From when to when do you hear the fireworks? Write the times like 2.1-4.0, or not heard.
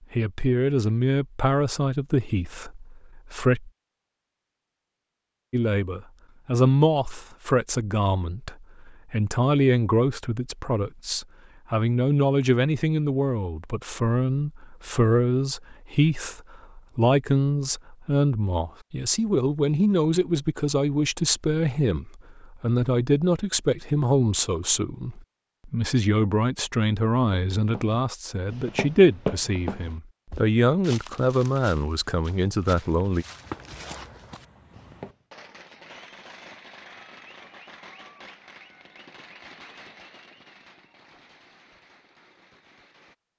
33.4-43.1.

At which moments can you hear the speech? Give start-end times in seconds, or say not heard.
0.1-3.7, 5.5-33.2.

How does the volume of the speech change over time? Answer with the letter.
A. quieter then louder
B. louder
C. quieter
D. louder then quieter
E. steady
E.